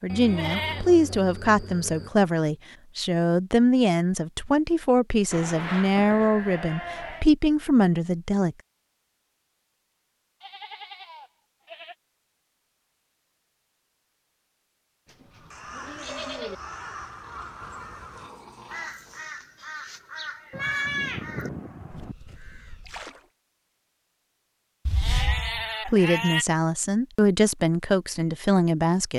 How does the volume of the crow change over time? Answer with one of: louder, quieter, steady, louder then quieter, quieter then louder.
quieter.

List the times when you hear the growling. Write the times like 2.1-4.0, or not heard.
17.6-19.2.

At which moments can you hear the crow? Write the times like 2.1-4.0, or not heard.
15.3-23.3.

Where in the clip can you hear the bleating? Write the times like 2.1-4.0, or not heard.
0.1-2.1, 5.3-7.3, 10.4-11.9, 15.1-16.6, 20.5-22.1, 24.9-26.4.